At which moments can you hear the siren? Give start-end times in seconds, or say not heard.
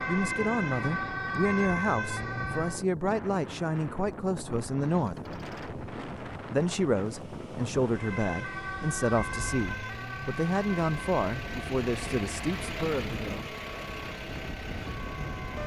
0.0-2.9, 7.9-15.6.